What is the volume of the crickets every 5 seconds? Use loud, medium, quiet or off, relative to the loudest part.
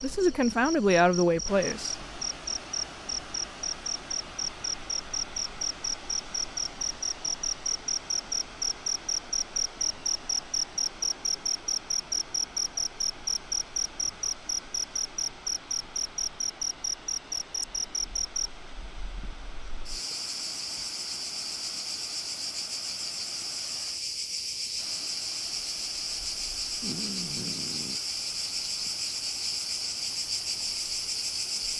medium, loud, loud, loud, loud, loud, loud.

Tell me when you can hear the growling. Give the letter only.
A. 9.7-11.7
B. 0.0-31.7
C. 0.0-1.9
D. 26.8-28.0
D.